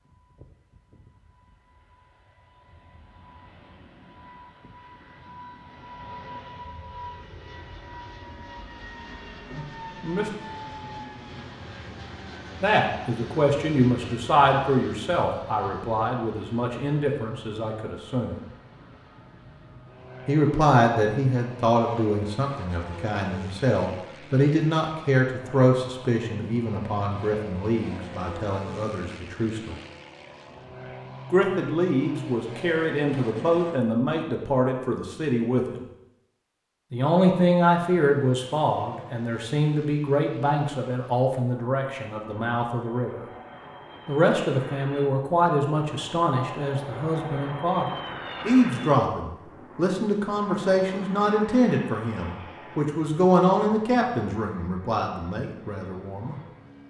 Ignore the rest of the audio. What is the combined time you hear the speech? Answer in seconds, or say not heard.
39 s.